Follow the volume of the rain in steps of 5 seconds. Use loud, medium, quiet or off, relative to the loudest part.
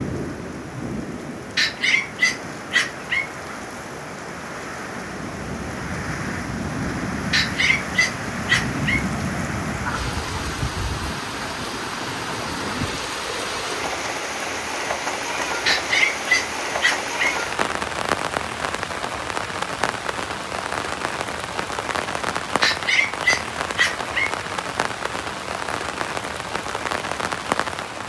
medium, loud, loud, loud, loud, loud.